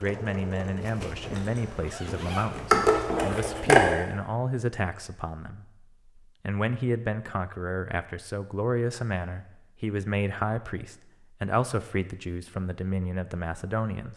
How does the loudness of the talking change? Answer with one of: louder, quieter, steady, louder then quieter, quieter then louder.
steady.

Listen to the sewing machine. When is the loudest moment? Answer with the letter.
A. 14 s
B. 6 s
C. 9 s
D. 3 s
D.